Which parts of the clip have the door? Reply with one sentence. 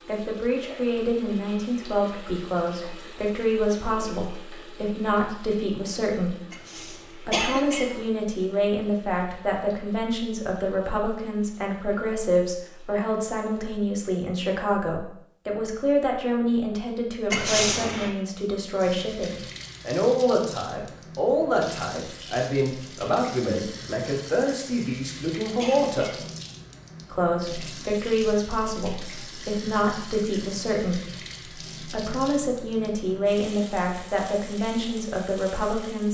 The door can't be heard in this clip.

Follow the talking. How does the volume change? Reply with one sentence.
The loudness of the talking stays about the same.